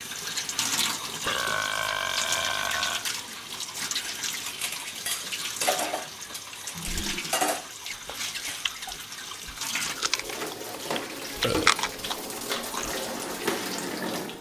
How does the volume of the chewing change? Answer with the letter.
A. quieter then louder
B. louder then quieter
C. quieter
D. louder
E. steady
B.